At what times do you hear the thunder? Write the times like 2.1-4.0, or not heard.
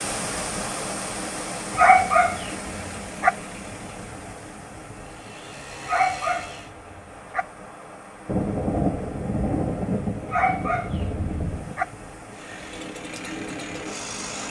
8.2-11.8.